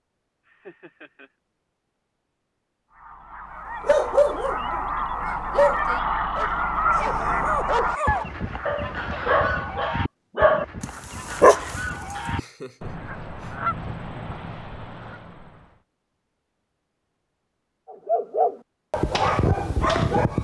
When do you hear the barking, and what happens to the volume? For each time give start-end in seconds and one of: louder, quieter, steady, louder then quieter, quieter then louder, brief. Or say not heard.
3.8-12.2 quieter then louder
17.9-20.3 brief.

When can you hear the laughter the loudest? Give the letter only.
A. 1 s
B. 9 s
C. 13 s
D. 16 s
C.